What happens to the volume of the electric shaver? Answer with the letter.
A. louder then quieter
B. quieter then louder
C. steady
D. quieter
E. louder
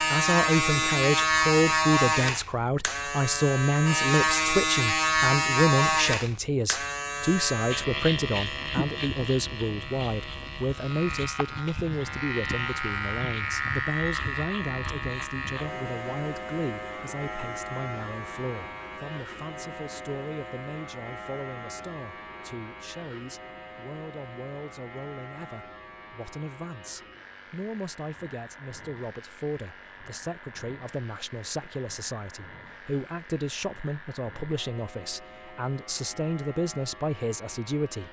D.